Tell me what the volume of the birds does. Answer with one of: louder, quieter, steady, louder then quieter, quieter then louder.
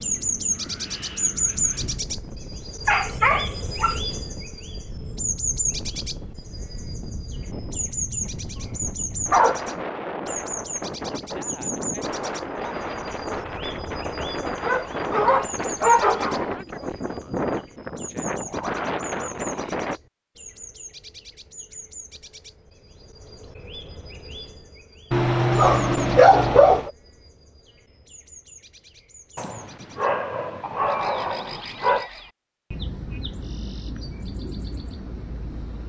quieter then louder.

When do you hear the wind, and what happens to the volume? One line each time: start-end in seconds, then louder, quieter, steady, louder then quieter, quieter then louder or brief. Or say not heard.
0.0-20.0 louder.